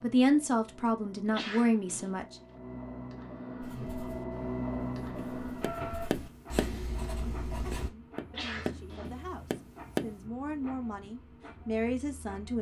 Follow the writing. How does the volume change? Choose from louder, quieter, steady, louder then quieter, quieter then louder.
louder.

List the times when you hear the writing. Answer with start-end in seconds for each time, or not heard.
3.6-7.9.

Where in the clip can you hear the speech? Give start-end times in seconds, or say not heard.
0.0-2.4, 7.7-12.5.